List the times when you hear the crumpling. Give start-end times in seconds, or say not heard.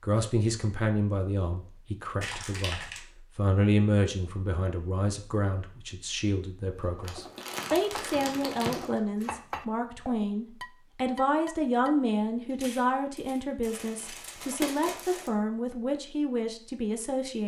2.2-3.0, 7.0-9.0, 13.6-15.3.